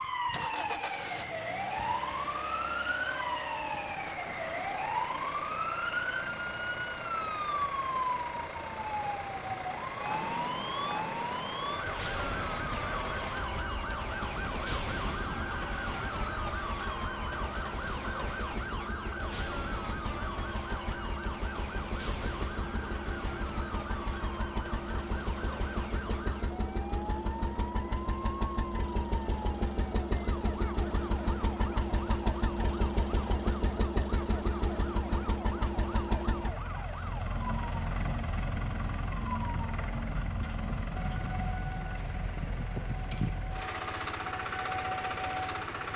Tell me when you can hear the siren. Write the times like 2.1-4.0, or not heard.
0.0-45.9.